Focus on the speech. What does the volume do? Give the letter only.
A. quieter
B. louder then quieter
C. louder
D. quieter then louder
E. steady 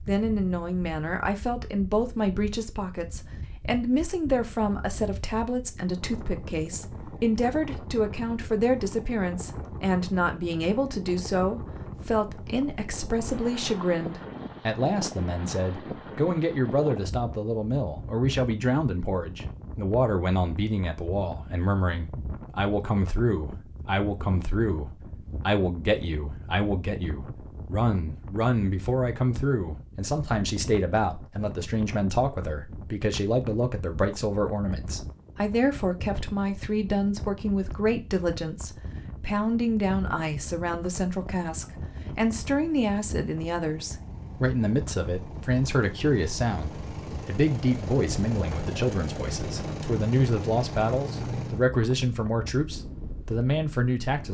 E.